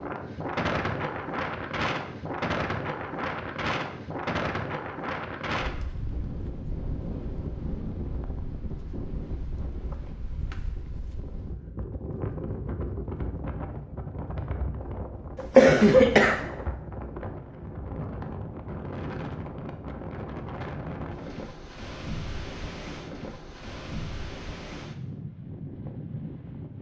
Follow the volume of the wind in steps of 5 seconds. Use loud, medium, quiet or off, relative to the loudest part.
loud, medium, medium, medium, medium, medium.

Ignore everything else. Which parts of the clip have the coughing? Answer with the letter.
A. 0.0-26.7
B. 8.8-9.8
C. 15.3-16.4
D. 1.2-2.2
C.